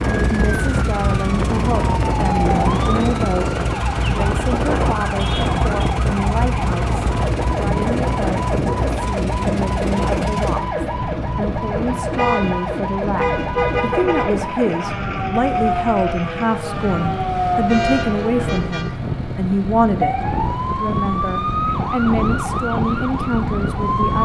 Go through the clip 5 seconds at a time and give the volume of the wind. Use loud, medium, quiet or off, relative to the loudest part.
loud, loud, medium, medium, loud.